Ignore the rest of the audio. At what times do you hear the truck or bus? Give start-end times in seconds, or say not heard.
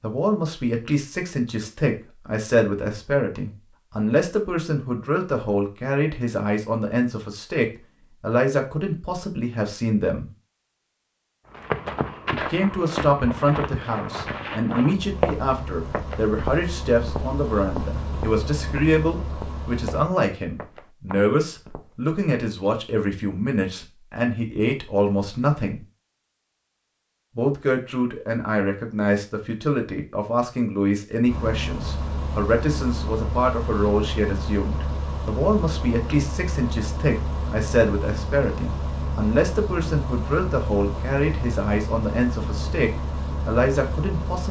14.9-20.1, 31.2-44.4.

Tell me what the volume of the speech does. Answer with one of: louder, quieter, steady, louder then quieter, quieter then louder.
steady.